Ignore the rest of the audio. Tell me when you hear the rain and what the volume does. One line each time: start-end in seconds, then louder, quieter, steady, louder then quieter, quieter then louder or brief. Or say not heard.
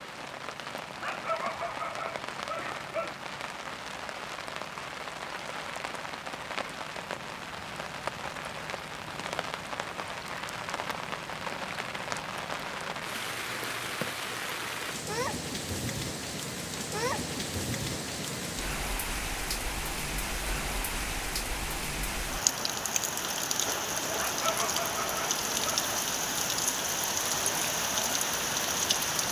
0.0-29.2 louder.